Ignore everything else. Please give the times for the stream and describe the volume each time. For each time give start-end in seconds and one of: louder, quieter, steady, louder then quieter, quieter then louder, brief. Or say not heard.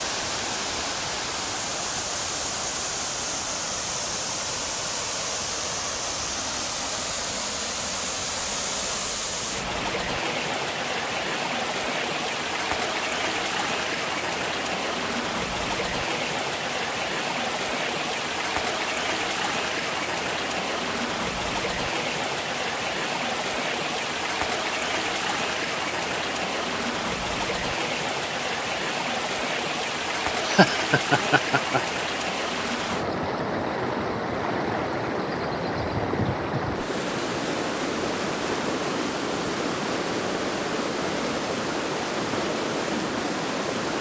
0.0-43.9 steady.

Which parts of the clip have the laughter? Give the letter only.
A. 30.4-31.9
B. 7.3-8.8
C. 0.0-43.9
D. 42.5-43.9
A.